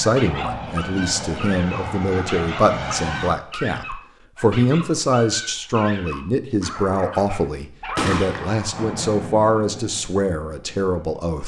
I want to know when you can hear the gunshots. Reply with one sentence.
You can hear the gunshots from 8.0 to 9.2 s.